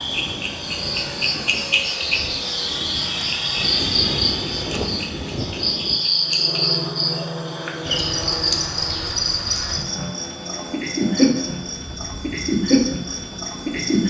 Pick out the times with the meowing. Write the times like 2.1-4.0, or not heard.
not heard.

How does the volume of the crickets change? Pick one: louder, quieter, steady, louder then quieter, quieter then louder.
steady.